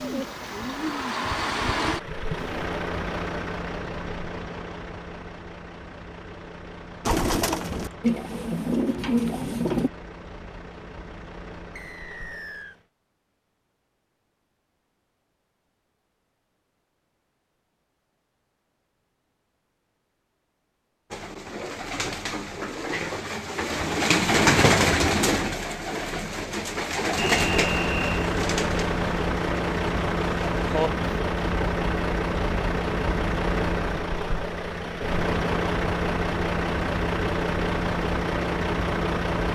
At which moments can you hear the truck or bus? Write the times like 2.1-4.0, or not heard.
0.0-12.8, 27.2-39.5.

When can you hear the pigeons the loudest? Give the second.
25 s.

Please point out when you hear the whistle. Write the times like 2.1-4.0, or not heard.
11.8-12.8, 27.1-28.3.